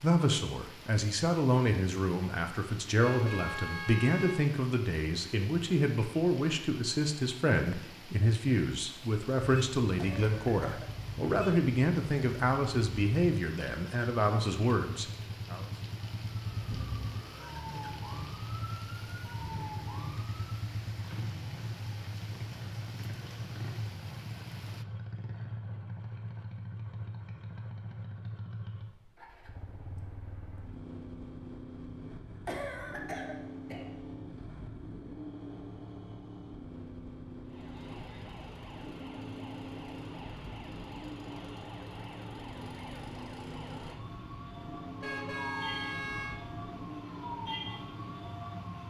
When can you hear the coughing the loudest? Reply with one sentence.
The loudest moment of the coughing is at 33 seconds.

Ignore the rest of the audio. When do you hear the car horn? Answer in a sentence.
The car horn can be heard from 3.0 to 4.5 s and from 45.0 to 46.4 s.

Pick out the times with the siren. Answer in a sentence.
You can hear the siren from 16.3 to 20.6 s and from 37.5 to 48.8 s.